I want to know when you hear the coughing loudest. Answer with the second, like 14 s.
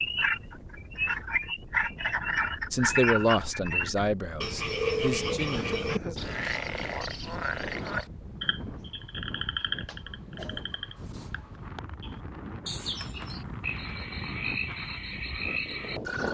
6 s.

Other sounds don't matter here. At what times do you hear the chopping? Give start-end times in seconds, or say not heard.
not heard.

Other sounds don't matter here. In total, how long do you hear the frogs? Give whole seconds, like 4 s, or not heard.
16 s.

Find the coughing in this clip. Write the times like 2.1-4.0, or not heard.
5.5-6.2, 9.8-10.8.